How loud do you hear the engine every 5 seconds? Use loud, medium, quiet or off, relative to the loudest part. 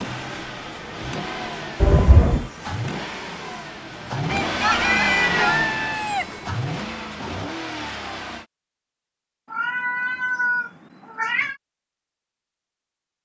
loud, loud, off.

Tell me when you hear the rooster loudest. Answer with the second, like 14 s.
6 s.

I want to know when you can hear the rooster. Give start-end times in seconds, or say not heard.
4.2-6.2.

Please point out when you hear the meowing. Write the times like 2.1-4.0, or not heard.
1.8-2.5, 4.7-5.5, 9.5-11.6.